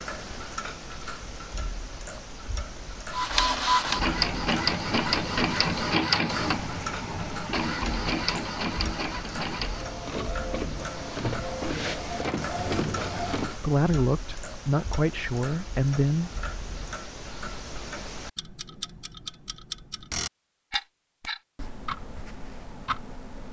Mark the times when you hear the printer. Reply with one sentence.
You can hear the printer from 3.1 to 13.6 s.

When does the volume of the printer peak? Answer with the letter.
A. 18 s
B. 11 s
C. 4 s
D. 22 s
C.